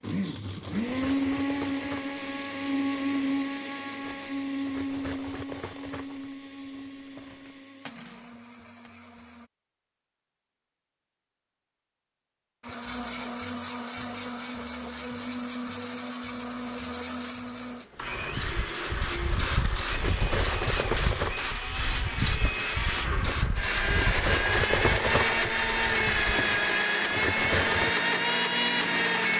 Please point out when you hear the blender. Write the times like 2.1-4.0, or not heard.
0.0-9.5, 12.6-29.3.